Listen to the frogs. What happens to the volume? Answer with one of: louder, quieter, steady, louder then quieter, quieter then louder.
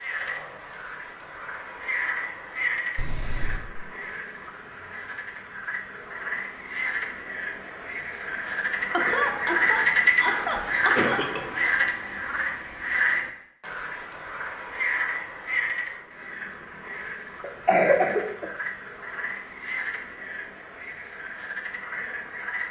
louder then quieter.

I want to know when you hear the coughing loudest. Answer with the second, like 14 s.
18 s.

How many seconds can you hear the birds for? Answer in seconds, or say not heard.
not heard.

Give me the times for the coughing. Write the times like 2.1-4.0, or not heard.
3.0-3.6, 8.9-11.4, 17.4-18.4.